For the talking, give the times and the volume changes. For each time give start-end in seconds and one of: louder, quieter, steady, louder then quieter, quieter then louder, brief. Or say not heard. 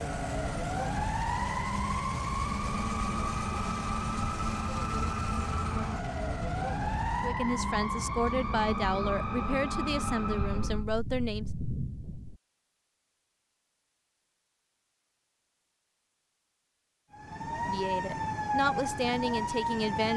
7.2-11.5 steady
17.6-20.1 brief.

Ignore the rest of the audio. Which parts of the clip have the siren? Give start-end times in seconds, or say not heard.
0.0-10.8, 17.1-20.1.